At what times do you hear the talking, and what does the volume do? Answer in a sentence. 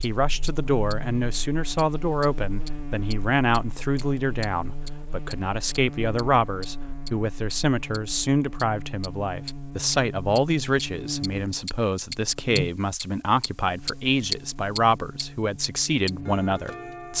You can hear the talking from 0.0 to 17.1 s, at a steady volume.